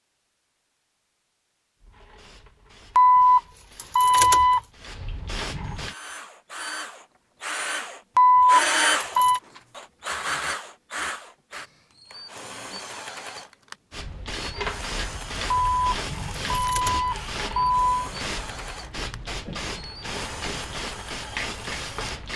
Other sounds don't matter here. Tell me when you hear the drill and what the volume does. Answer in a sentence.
You can hear the drill from 5.7 to 22.1 s, getting quieter.